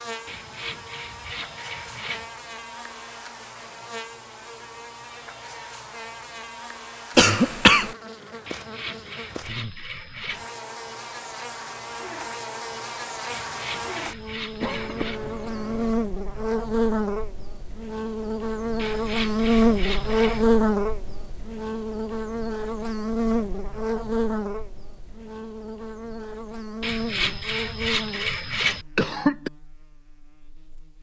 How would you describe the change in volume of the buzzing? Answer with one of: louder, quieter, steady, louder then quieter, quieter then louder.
louder then quieter.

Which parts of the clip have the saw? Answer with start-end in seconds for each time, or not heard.
0.2-2.3, 8.4-10.4, 13.3-15.2, 18.8-20.4, 26.8-28.9.